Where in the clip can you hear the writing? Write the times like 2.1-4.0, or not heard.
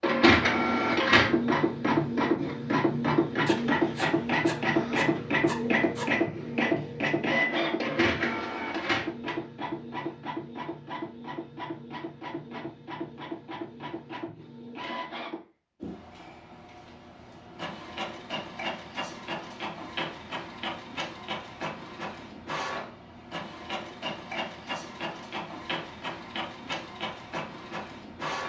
3.5-6.0.